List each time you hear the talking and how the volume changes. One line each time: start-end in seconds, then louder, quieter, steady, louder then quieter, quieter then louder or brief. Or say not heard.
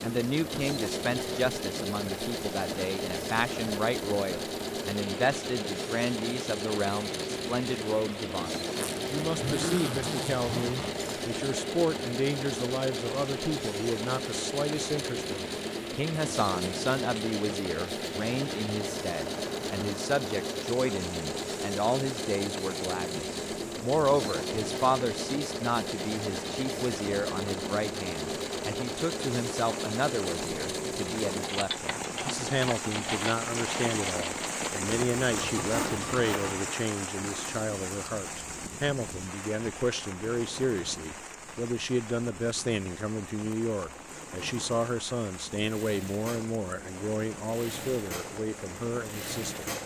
0.0-49.7 steady.